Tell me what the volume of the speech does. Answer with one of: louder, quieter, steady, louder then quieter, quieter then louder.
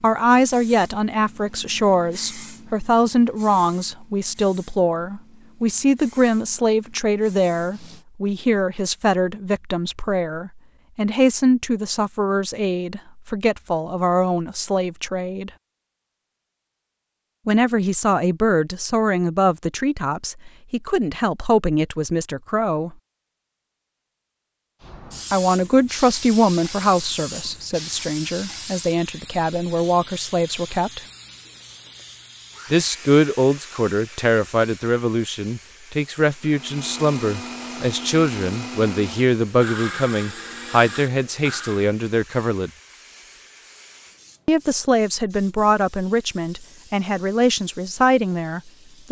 steady.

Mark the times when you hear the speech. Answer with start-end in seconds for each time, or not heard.
0.0-15.5, 17.4-22.9, 25.3-31.0, 32.7-42.7, 44.5-49.0.